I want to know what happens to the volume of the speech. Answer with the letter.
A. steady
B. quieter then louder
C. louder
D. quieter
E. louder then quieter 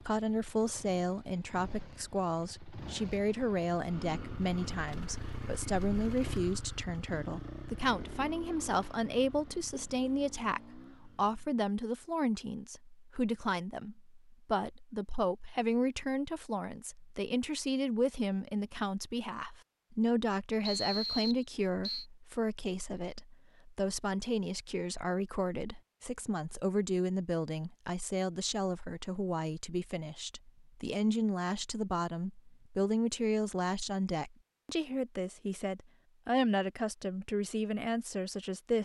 A.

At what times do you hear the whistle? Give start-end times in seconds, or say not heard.
20.6-22.1.